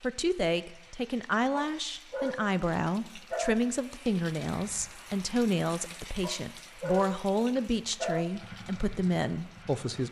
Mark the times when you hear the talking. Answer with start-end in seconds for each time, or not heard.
0.0-10.0.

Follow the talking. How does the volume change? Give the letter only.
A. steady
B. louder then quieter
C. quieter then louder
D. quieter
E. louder
A.